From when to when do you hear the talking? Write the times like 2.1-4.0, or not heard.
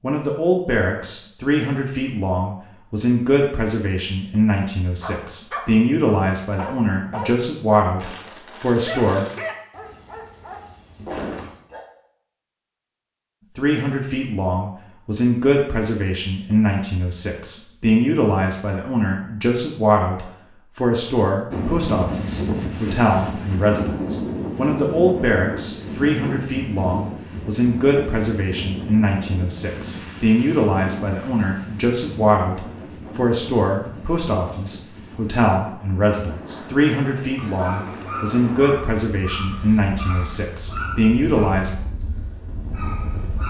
0.0-9.2, 13.6-41.7.